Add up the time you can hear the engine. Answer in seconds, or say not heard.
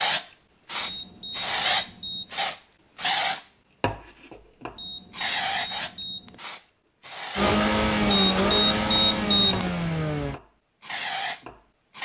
3 s.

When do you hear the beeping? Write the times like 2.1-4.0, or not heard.
0.8-2.4, 4.8-6.4, 8.1-9.8.